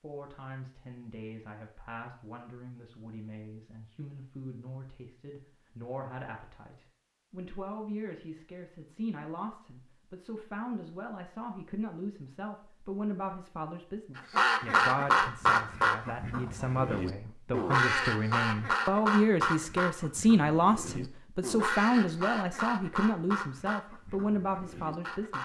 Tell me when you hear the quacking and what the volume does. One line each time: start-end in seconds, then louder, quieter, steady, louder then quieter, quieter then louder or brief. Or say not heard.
14.2-25.4 quieter.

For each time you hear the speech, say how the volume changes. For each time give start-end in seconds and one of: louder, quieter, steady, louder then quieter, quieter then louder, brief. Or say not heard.
0.0-25.4 louder.